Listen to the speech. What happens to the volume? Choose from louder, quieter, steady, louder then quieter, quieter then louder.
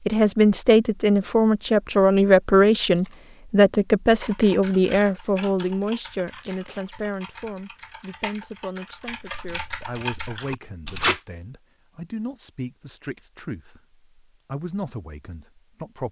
quieter.